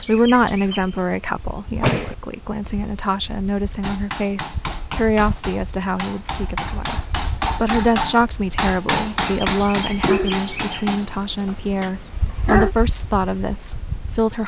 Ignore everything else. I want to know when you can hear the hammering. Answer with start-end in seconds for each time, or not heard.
3.8-11.1.